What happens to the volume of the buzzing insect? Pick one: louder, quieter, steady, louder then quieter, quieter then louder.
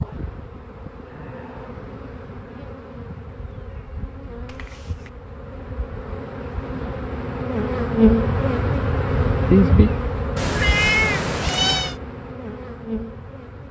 louder then quieter.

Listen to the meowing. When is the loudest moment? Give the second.
11 s.